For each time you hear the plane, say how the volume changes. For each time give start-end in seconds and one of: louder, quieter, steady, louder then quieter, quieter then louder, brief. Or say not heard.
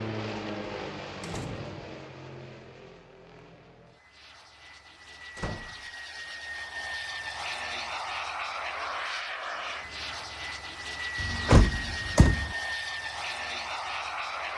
0.0-14.5 quieter then louder.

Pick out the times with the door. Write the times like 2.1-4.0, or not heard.
1.2-1.9, 5.3-5.8, 11.2-12.6.